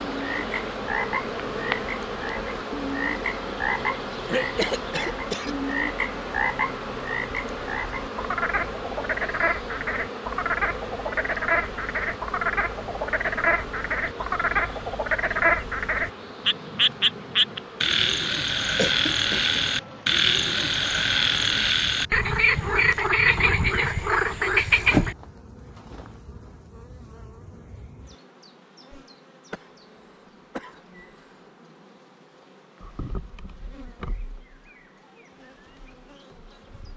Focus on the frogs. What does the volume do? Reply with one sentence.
The loudness of the frogs goes up.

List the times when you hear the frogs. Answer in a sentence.
The frogs can be heard from 0.0 to 25.1 s.